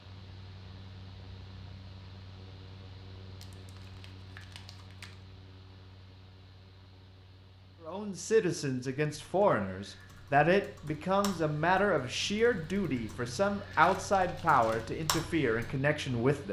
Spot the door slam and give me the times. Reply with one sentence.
The door slam can't be heard in this clip.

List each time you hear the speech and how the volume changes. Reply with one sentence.
The speech can be heard from 7.8 to 16.4 s, at a steady volume.